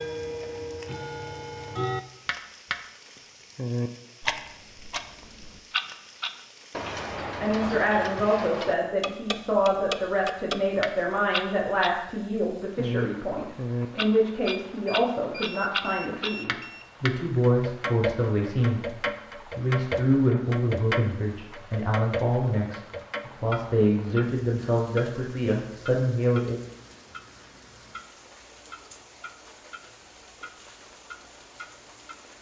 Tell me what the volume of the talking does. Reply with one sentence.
The loudness of the talking stays about the same.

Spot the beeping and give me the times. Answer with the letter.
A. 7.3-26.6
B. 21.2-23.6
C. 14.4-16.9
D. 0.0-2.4
C.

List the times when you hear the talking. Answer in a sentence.
The talking can be heard from 7.3 to 26.6 s.